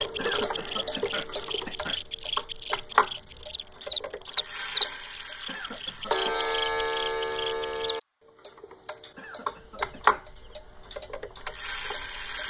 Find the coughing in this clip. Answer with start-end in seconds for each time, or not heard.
0.1-2.0, 5.5-6.5, 9.2-10.2.